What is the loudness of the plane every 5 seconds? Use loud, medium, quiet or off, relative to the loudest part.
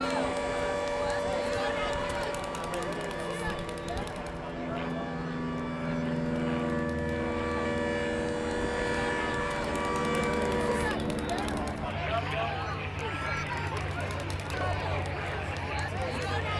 medium, loud, loud, medium.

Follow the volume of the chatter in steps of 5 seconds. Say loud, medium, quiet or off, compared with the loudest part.
loud, medium, loud, loud.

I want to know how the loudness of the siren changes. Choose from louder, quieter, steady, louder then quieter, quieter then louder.
quieter then louder.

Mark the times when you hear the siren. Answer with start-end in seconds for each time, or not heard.
0.0-10.9.